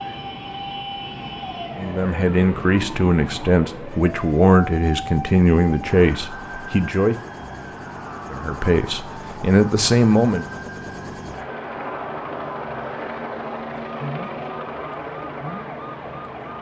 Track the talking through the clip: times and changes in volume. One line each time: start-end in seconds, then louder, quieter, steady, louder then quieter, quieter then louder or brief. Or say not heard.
1.8-7.2 steady
8.3-10.4 brief.